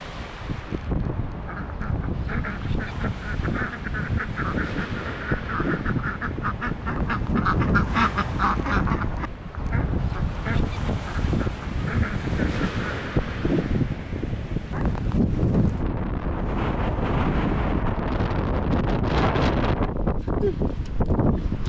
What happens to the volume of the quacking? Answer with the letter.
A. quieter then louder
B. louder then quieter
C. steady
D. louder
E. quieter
B.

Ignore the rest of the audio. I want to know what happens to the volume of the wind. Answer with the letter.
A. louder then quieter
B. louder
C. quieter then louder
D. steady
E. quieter
B.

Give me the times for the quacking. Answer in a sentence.
You can hear the quacking from 1.0 to 12.8 s.